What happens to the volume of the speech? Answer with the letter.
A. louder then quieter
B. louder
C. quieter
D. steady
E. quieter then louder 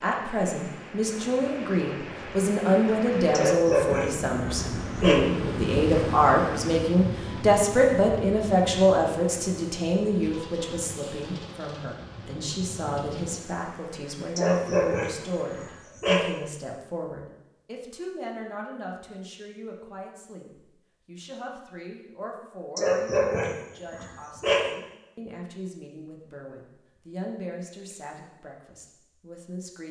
C.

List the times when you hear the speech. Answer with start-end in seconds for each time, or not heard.
0.0-29.8.